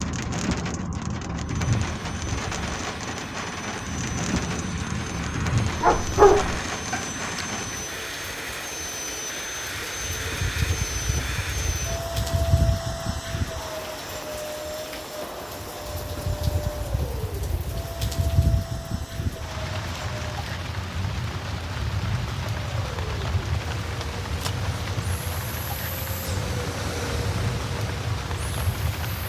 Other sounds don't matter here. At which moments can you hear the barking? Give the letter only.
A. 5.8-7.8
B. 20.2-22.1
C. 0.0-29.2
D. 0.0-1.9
A.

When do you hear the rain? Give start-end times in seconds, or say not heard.
0.0-29.2.